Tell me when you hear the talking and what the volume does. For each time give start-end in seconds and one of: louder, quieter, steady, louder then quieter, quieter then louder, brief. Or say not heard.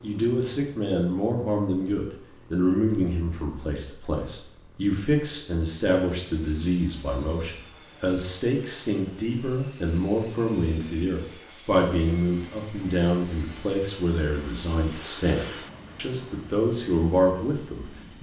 0.0-18.1 steady.